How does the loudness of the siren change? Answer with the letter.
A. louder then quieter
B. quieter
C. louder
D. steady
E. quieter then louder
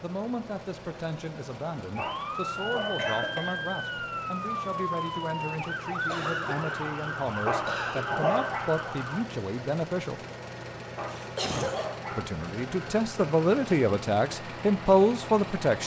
D.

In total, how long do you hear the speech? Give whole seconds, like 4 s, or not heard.
14 s.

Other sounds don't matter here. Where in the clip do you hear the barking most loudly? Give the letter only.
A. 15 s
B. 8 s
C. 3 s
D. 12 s
B.